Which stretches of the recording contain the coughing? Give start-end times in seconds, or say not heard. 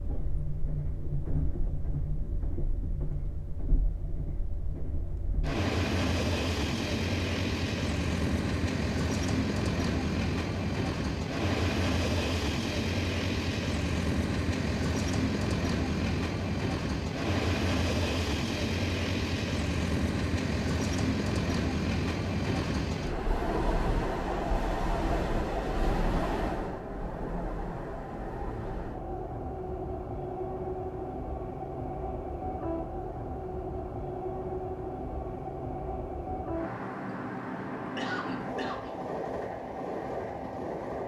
37.8-39.0.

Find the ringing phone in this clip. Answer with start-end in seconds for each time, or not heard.
not heard.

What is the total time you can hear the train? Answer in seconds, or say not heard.
41 s.